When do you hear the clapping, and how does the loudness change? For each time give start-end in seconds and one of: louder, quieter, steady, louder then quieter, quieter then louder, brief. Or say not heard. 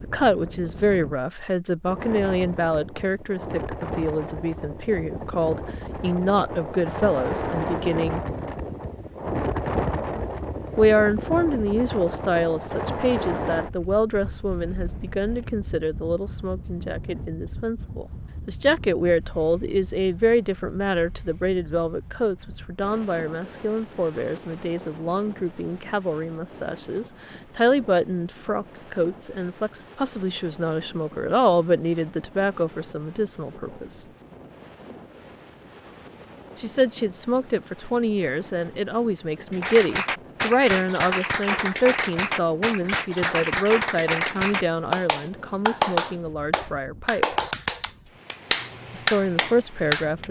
39.5-50.2 steady.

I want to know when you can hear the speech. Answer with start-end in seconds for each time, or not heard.
0.0-8.2, 10.8-34.0, 36.5-47.2, 48.9-50.2.